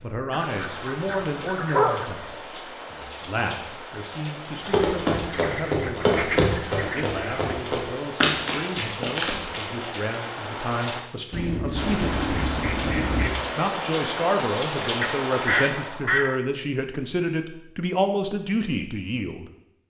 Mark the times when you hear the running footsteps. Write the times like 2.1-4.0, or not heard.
4.6-9.8.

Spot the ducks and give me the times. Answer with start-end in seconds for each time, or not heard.
0.3-2.1, 5.3-7.5, 11.3-13.3, 15.0-16.4.